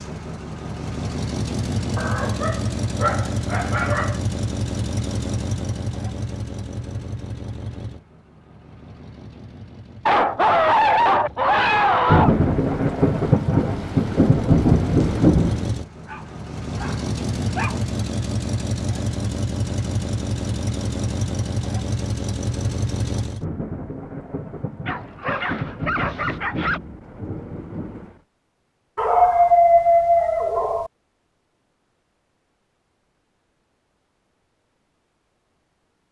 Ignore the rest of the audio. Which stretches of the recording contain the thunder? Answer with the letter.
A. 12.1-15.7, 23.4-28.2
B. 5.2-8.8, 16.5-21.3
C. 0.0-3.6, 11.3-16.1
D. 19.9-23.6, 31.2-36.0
A.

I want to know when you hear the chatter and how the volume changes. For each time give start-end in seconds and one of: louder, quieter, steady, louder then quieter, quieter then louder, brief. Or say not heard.
not heard.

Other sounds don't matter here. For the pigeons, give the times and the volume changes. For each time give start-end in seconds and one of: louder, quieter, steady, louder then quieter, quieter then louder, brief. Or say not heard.
not heard.